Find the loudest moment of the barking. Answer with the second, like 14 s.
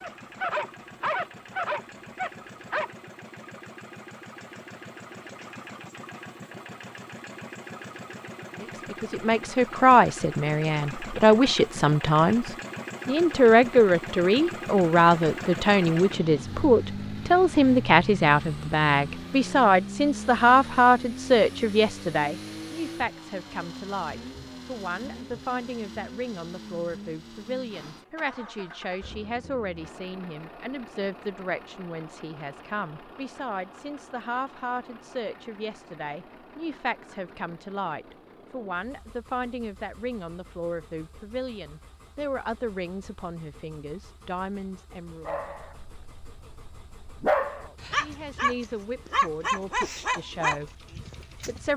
47 s.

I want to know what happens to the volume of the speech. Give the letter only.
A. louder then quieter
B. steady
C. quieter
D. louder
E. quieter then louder
C.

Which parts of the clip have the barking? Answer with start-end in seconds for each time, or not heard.
0.0-2.9, 45.2-51.7.